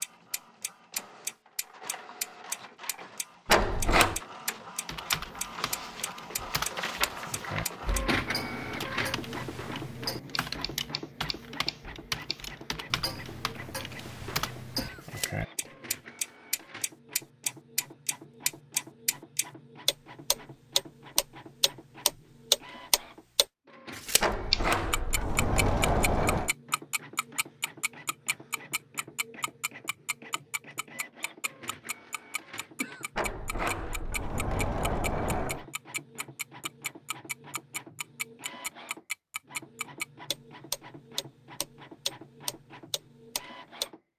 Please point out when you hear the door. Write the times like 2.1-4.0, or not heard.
3.5-4.2, 24.2-26.6, 33.1-35.6.